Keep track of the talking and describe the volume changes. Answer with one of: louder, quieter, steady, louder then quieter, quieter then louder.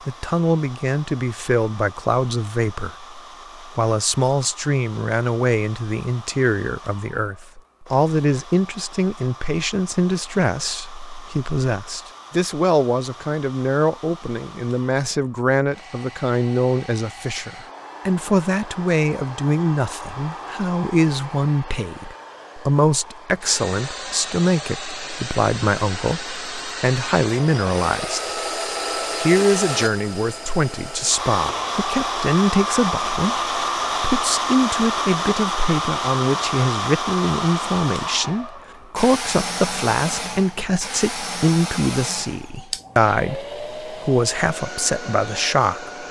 steady.